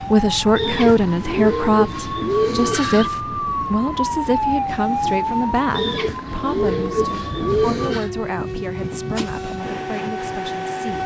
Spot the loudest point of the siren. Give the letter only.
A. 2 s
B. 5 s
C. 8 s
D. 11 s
B.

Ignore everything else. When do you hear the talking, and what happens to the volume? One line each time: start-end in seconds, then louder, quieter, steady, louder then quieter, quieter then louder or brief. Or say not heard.
0.1-11.0 quieter.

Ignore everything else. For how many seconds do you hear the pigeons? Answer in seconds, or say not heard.
5 s.